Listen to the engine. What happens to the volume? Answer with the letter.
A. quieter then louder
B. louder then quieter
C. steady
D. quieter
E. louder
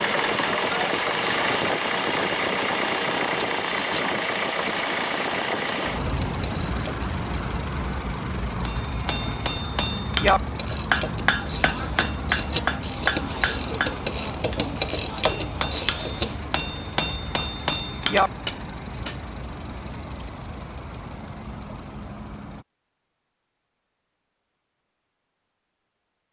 D.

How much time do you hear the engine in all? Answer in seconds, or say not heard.
23 s.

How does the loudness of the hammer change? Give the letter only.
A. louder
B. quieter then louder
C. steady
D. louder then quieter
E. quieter
B.